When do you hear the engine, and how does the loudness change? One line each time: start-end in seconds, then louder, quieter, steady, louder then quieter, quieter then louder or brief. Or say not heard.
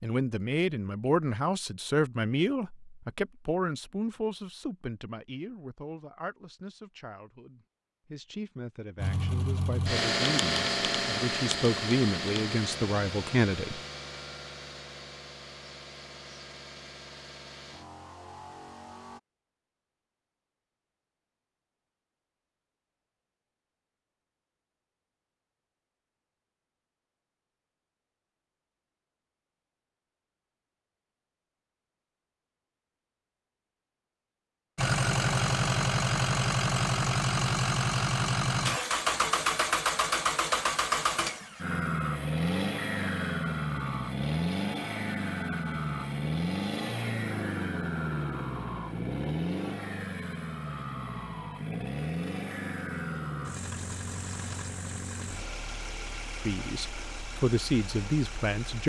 8.9-19.2 quieter
34.8-58.8 quieter.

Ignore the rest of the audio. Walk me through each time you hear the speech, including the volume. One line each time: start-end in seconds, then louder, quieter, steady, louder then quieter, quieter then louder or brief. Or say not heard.
0.0-13.8 quieter then louder
56.4-58.8 brief.